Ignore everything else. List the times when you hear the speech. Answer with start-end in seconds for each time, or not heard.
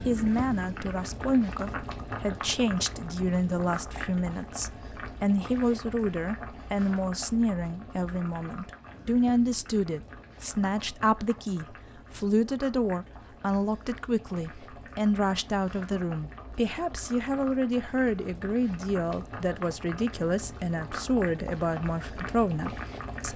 0.1-23.3.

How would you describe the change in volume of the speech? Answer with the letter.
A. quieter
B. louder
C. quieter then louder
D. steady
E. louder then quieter
D.